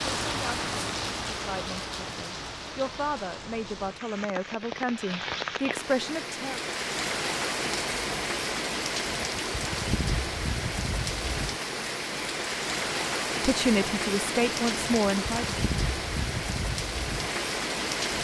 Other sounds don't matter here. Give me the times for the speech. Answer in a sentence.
The speech can be heard from 0.2 to 6.7 s and from 13.4 to 15.6 s.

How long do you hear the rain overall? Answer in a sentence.
The rain can be heard for 18 seconds in total.